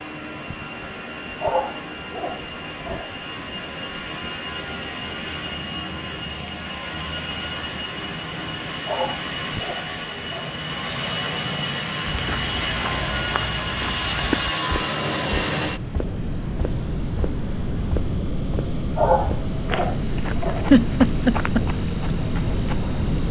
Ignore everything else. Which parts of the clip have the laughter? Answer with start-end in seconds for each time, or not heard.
20.7-21.6.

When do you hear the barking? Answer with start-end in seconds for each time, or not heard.
1.4-3.1, 8.8-10.6, 18.9-20.6.